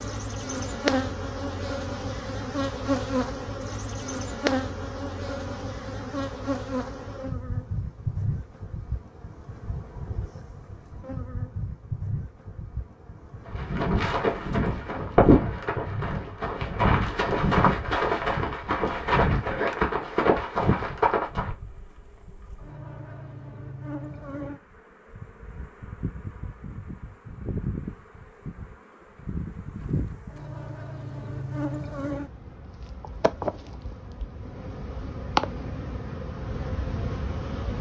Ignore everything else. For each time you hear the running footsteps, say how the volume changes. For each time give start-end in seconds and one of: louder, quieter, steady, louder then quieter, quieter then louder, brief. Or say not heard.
13.4-21.5 steady.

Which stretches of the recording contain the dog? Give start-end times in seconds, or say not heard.
not heard.